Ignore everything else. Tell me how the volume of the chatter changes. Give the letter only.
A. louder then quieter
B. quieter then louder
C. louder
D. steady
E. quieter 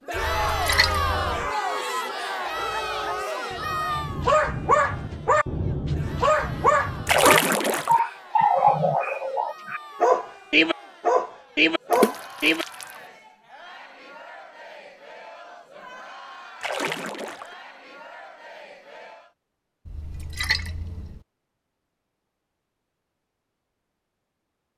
E.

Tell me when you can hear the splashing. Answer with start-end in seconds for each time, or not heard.
0.1-1.5, 7.0-8.0, 11.9-12.8, 16.6-17.6, 19.9-21.2.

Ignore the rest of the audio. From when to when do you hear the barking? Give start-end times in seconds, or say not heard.
2.5-12.7.